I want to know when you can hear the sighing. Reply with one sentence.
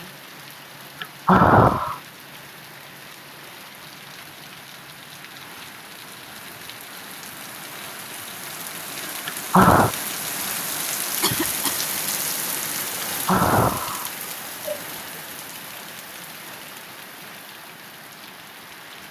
The sighing can be heard from 1.0 to 2.0 s, from 9.2 to 9.9 s and from 13.0 to 14.8 s.